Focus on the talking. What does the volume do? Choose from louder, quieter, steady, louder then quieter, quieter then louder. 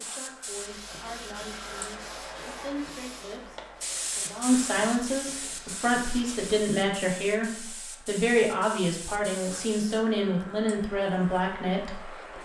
louder.